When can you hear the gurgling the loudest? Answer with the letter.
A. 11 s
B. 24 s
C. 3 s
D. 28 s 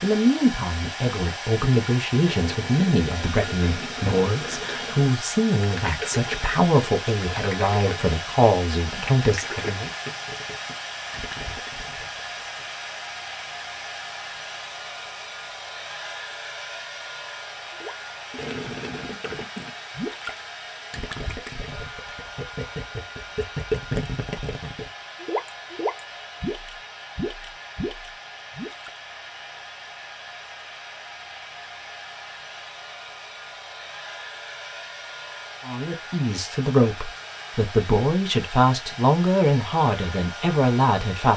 B.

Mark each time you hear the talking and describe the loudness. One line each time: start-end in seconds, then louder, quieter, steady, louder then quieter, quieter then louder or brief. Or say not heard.
0.0-9.9 steady
35.6-41.3 steady.